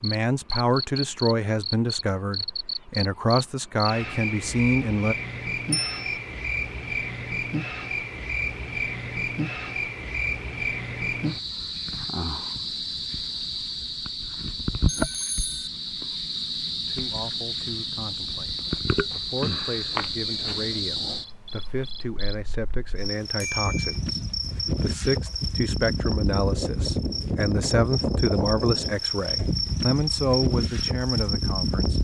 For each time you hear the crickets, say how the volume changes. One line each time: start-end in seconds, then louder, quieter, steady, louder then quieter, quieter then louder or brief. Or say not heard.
0.0-32.0 steady.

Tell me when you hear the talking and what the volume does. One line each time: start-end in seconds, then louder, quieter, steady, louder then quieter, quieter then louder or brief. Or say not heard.
0.0-5.2 quieter then louder
16.9-32.0 louder.